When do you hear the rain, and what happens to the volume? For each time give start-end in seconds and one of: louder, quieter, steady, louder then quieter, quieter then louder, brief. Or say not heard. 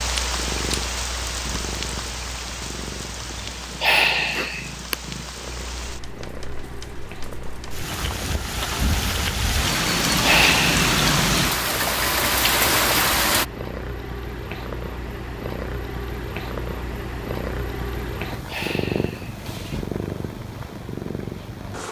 0.0-13.4 quieter then louder.